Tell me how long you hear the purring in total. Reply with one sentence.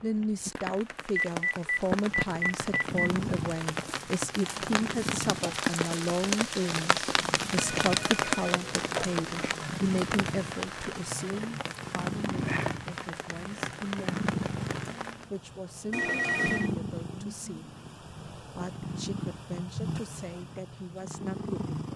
You can hear the purring for 20 seconds altogether.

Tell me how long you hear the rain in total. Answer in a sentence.
You can hear the rain for 15 seconds altogether.